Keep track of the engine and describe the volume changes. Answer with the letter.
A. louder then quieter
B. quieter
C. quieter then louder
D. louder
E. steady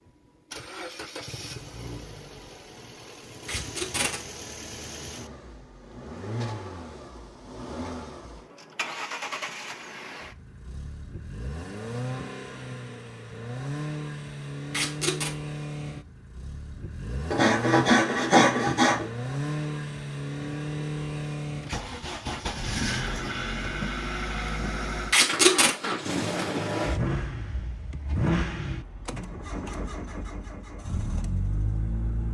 D.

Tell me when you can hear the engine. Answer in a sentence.
The engine can be heard from 0.0 to 32.2 s.